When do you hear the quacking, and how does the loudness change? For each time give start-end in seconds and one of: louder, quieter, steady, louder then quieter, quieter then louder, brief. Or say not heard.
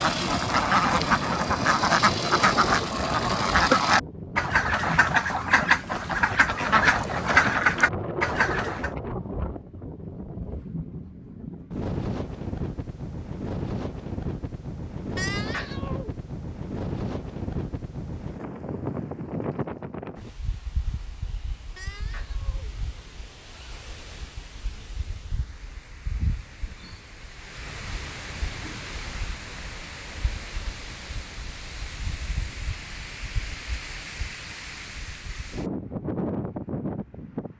0.0-8.9 steady.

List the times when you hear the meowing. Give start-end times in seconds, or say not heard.
15.2-16.1, 21.8-22.7.